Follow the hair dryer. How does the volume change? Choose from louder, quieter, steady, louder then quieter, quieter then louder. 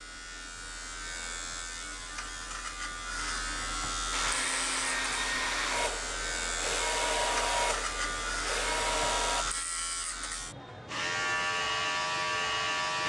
steady.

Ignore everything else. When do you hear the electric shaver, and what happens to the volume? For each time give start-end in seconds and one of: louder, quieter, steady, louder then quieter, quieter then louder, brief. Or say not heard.
0.0-13.0 louder.